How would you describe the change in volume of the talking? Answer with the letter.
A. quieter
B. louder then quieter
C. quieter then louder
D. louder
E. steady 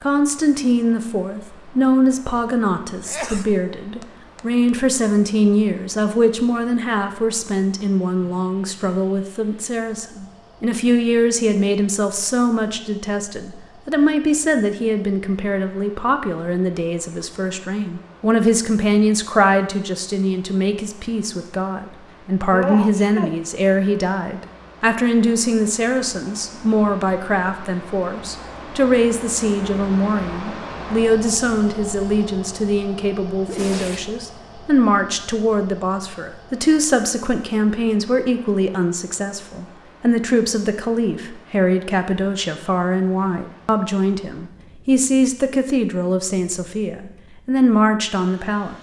E.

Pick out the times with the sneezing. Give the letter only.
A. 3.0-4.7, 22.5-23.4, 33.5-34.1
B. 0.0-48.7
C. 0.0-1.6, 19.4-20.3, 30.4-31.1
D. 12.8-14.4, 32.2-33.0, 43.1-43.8
A.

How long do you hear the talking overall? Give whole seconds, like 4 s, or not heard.
49 s.